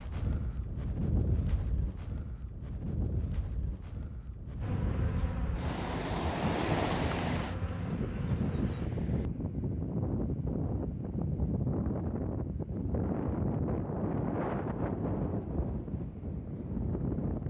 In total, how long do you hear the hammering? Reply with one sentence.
The hammering can't be heard in this clip.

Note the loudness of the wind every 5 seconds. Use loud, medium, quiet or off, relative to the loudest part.
medium, loud, loud, loud.